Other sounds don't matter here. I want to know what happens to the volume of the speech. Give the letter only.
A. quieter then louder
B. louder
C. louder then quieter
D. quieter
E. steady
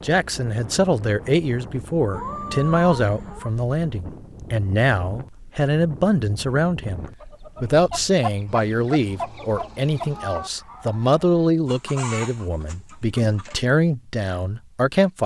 E.